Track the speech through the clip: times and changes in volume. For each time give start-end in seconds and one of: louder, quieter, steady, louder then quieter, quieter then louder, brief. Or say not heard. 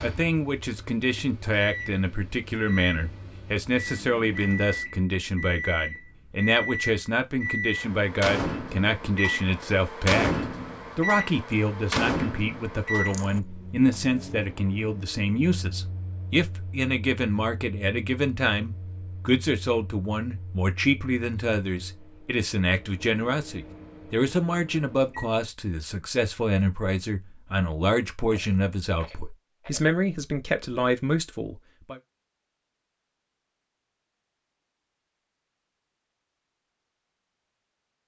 0.0-32.0 steady.